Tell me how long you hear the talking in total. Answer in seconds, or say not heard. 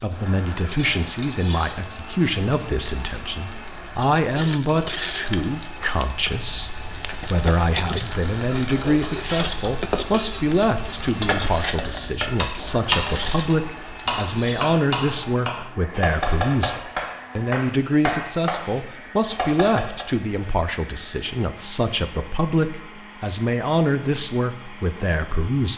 26 s.